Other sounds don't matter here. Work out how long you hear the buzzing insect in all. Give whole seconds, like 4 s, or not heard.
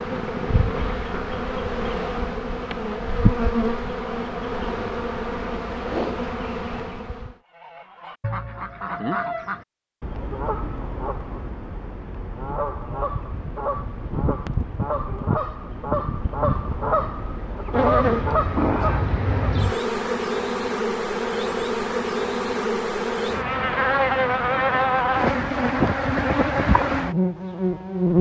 23 s.